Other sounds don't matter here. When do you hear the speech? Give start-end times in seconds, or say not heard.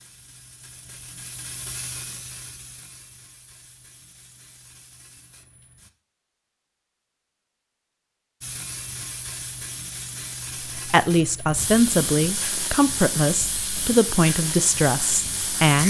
10.8-15.8.